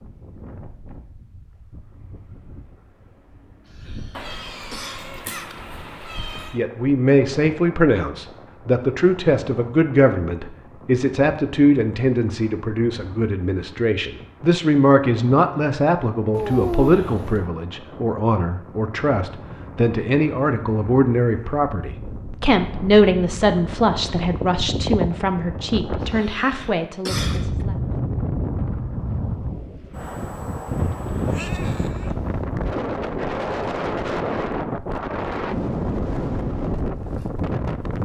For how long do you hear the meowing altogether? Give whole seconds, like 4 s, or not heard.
5 s.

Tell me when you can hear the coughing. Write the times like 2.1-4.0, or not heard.
3.6-5.5, 26.0-27.6.